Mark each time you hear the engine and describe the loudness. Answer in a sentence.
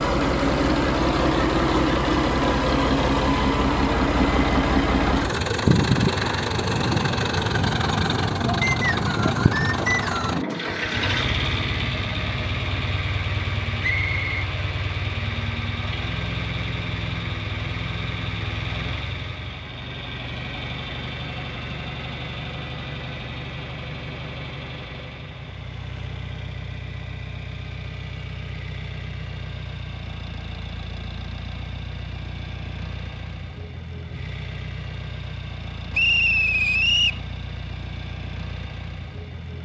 You can hear the engine from 0.0 to 39.6 s, getting quieter.